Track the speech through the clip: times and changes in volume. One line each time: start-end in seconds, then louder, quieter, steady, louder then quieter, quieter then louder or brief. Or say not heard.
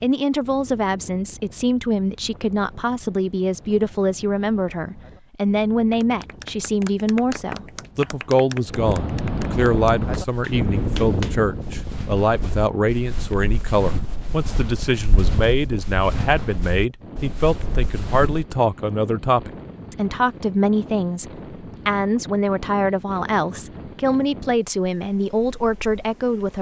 0.0-26.5 steady.